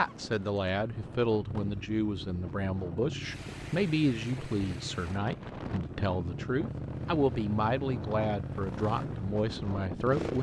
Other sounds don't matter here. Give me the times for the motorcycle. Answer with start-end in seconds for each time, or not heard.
0.0-10.3.